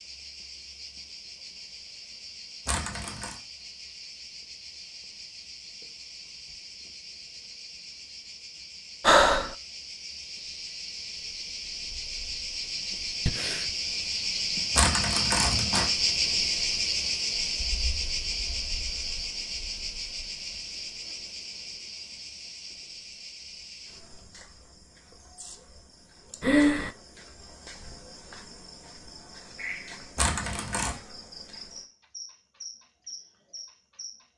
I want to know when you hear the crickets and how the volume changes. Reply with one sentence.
You can hear the crickets from 0.0 to 34.2 s, getting louder then quieter.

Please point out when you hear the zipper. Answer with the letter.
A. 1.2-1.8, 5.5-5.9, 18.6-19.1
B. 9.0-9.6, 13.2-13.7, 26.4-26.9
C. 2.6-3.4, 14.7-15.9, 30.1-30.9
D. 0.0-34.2
C.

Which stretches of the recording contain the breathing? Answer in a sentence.
You can hear the breathing from 9.0 to 9.6 s, from 13.2 to 13.7 s and from 26.4 to 26.9 s.